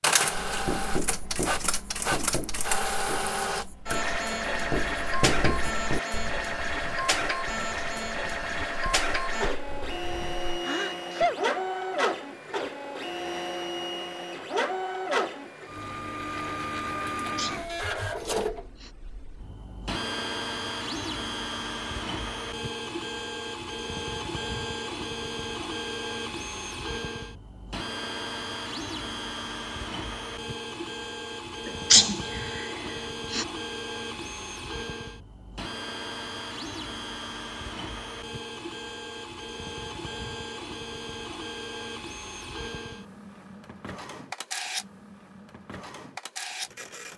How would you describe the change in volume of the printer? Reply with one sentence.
The loudness of the printer goes down.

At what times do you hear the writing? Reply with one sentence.
The writing can be heard from 0.2 to 10.5 s.